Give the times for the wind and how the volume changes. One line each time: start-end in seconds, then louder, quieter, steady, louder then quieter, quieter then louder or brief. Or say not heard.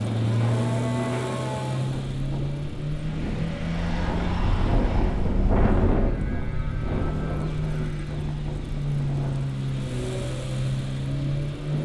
0.0-11.7 louder then quieter.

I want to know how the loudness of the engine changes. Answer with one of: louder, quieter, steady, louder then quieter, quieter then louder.
quieter then louder.